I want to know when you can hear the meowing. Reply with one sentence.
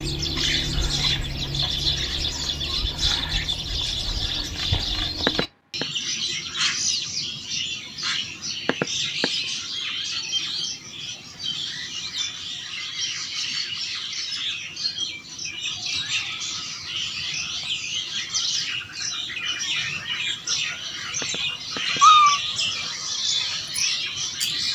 You can hear the meowing from 5.2 to 5.8 s, from 8.7 to 9.2 s and from 21.2 to 22.4 s.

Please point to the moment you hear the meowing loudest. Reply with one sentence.
The volume of the meowing peaks at 22 seconds.